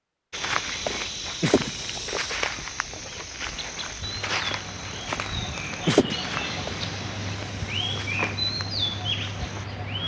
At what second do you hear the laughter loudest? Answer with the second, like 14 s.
6 s.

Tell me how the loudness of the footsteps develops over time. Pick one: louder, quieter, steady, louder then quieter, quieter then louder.
quieter.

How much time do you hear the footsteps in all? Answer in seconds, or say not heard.
9 s.